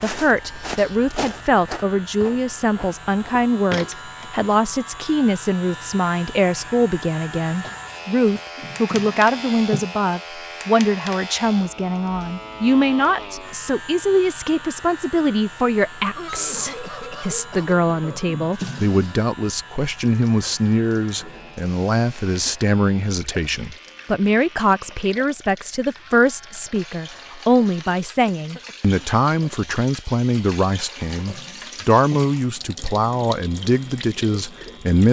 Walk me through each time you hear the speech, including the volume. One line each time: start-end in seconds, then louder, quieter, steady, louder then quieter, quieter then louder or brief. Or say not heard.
0.0-35.0 steady.